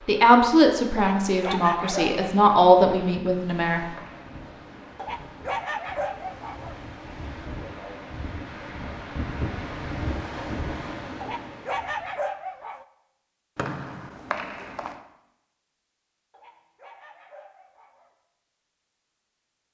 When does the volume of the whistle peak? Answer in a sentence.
The volume of the whistle peaks at 14 seconds.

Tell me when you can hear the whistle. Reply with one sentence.
You can hear the whistle from 3.2 to 4.3 s and from 13.6 to 15.0 s.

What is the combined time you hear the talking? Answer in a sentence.
The talking can be heard for 4 seconds in total.